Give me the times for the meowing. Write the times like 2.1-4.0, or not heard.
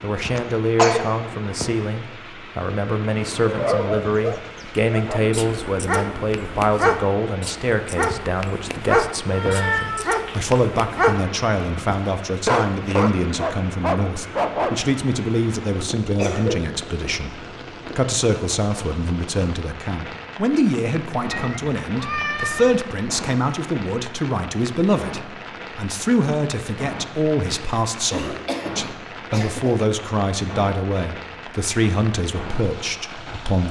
9.3-10.6, 21.3-22.8.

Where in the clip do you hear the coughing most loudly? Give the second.
1 s.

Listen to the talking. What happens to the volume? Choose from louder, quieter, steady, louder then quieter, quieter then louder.
steady.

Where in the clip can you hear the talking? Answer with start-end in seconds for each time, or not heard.
0.0-33.6.